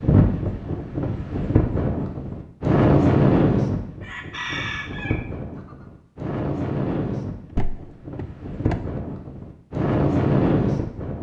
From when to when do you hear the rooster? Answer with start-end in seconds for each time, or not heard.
4.0-5.8.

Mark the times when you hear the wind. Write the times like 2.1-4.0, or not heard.
0.0-11.1.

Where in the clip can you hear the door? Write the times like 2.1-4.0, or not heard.
7.5-8.8.